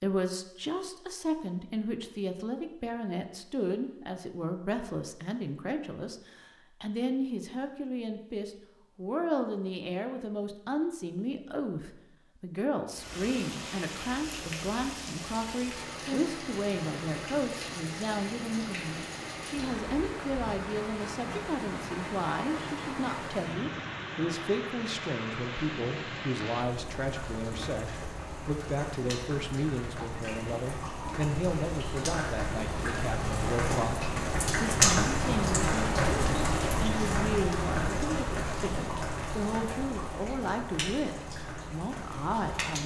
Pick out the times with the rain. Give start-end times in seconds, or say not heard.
12.9-42.8.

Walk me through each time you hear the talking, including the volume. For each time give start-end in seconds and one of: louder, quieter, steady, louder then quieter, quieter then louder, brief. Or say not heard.
0.0-42.8 steady.